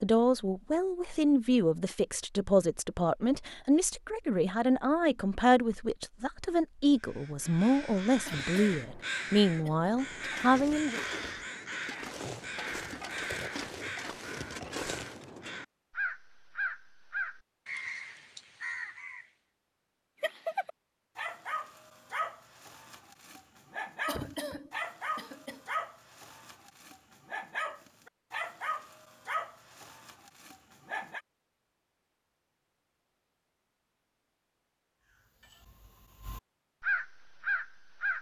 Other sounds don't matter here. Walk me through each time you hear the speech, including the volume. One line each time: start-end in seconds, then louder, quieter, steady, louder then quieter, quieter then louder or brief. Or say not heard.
0.0-11.0 steady.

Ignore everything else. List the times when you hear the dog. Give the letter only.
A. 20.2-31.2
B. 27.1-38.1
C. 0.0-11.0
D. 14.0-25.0
A.